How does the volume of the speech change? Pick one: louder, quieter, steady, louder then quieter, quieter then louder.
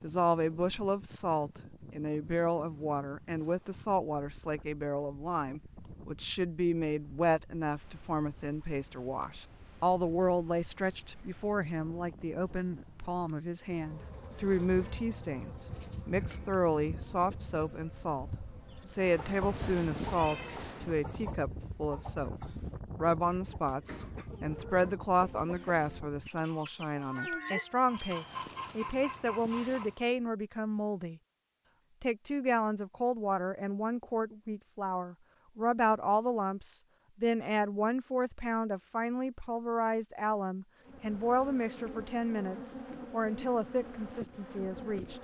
steady.